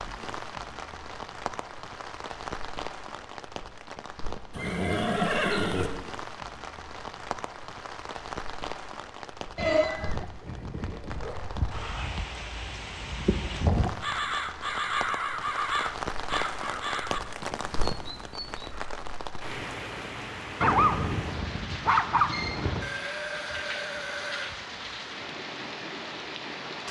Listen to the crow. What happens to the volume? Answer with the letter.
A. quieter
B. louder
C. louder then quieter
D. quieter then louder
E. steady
C.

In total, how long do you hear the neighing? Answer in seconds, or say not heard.
5 s.